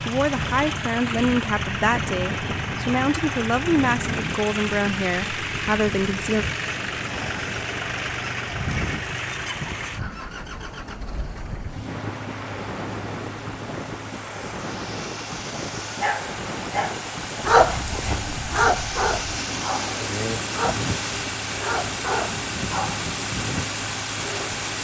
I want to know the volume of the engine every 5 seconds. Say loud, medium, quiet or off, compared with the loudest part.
loud, loud, medium, loud, loud.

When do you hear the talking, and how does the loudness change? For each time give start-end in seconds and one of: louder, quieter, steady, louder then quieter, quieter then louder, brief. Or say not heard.
0.1-6.5 steady.